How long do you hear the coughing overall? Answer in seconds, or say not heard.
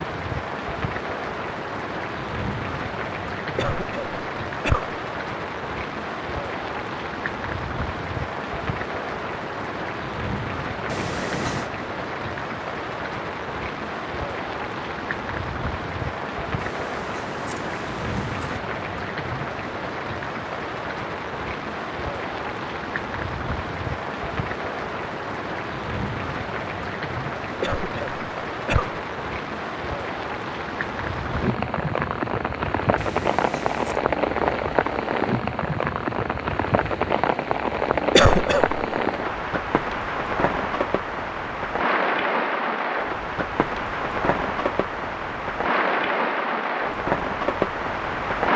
3 s.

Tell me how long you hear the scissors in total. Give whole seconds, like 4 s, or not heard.
4 s.